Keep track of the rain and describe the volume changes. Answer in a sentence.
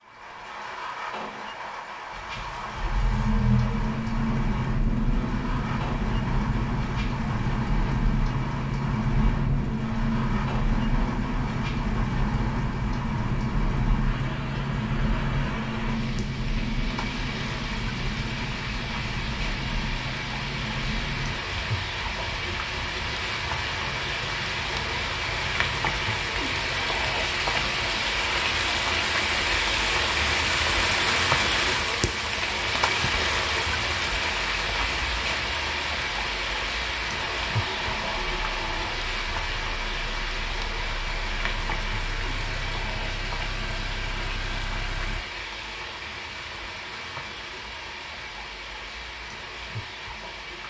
The volume of the rain goes up, then down.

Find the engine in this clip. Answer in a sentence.
You can hear the engine from 2.1 to 28.0 s and from 37.3 to 45.2 s.